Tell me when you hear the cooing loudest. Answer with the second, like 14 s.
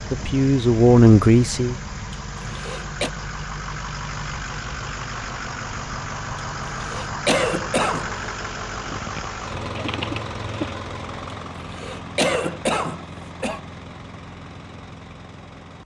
10 s.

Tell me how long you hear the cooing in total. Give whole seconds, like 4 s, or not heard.
2 s.